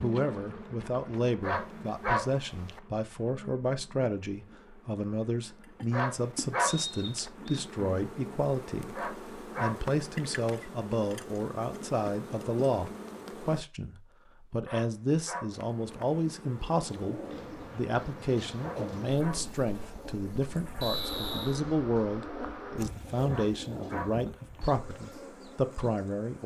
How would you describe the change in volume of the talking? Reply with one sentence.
The volume of the talking stays about the same.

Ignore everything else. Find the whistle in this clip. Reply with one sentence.
The whistle can be heard from 6.7 to 7.6 s and from 20.8 to 21.6 s.